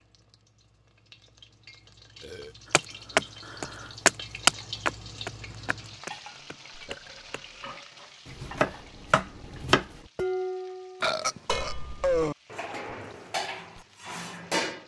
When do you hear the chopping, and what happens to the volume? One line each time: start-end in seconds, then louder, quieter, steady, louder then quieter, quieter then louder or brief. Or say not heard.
2.7-9.8 quieter then louder.